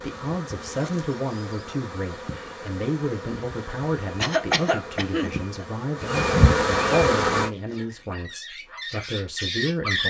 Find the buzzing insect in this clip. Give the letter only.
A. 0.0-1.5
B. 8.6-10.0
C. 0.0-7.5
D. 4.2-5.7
C.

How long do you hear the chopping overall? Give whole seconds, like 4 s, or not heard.
not heard.